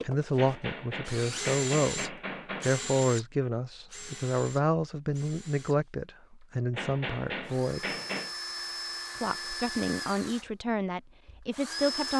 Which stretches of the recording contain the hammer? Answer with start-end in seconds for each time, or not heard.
0.3-2.8, 6.7-8.3.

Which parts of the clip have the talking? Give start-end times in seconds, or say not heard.
0.0-7.8, 9.2-12.1.